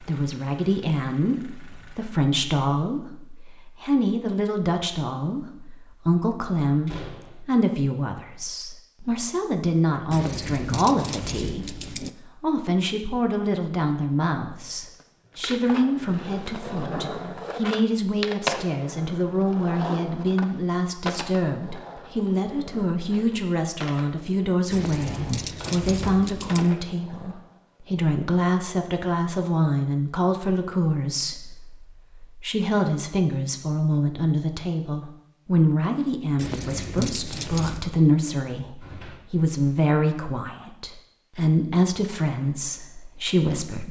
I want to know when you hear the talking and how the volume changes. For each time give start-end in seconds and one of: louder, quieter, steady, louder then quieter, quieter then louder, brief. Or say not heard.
0.0-43.8 steady.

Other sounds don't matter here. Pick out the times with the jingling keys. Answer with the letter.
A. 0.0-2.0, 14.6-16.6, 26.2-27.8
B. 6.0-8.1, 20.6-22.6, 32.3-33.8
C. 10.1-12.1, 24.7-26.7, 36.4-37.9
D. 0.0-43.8
C.